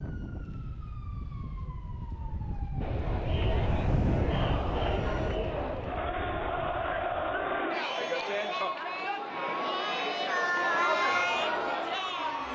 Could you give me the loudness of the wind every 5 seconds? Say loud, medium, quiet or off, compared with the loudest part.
loud, medium, off.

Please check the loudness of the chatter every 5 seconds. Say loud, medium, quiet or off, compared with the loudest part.
medium, loud, loud.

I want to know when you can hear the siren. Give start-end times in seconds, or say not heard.
0.0-5.4, 10.9-12.5.